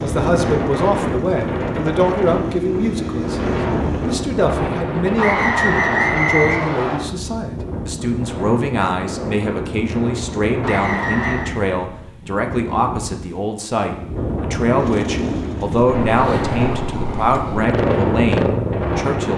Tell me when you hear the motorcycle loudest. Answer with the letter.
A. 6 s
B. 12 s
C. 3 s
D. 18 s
D.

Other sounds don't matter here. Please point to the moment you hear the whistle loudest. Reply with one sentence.
The volume of the whistle peaks at 6 seconds.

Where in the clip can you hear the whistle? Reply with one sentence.
The whistle can be heard from 5.2 to 7.0 s and from 10.6 to 11.6 s.